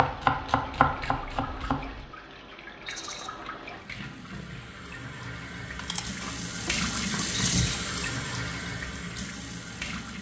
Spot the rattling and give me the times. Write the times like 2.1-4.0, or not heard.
2.9-3.3, 7.3-7.8.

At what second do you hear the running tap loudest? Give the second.
7 s.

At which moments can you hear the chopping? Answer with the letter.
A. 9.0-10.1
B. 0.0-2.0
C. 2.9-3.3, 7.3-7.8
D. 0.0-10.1
B.